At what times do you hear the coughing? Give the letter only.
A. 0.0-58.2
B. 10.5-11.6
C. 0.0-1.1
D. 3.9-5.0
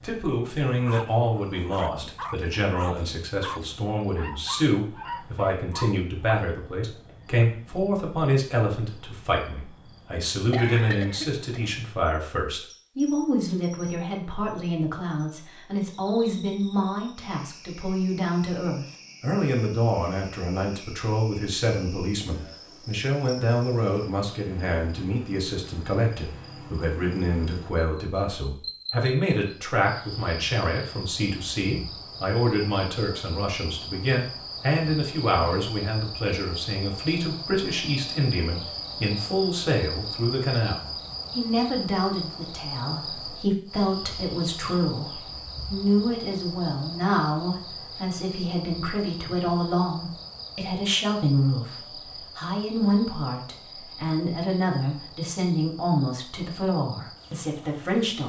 B.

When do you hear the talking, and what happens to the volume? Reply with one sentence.
You can hear the talking from 0.0 to 58.2 s, at a steady volume.